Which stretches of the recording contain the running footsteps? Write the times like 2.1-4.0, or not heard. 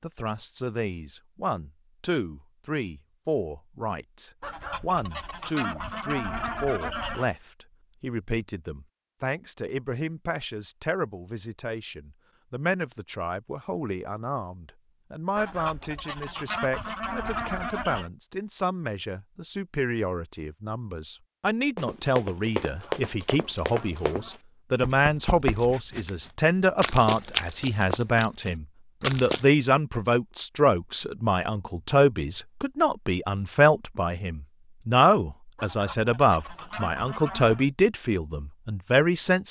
21.8-29.5.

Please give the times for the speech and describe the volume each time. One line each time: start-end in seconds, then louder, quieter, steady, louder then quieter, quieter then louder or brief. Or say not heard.
0.0-39.4 louder.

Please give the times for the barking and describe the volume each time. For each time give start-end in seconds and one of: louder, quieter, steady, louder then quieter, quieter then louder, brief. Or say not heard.
not heard.